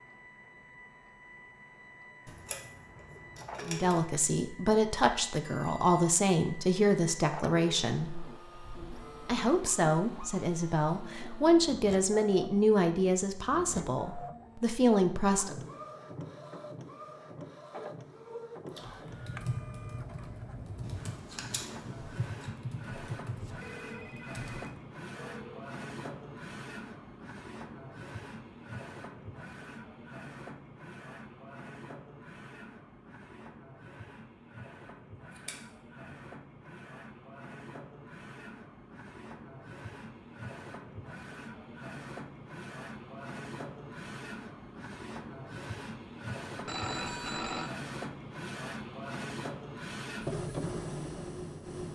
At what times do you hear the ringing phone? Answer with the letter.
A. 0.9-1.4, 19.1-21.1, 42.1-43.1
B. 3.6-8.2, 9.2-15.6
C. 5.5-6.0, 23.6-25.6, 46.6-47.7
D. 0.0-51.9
C.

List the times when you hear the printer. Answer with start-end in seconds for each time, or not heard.
0.0-51.9.